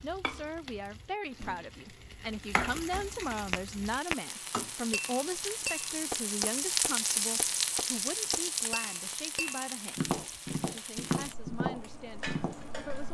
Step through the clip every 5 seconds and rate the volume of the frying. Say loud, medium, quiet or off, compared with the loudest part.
medium, loud, medium.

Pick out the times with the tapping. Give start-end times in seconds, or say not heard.
3.5-12.6.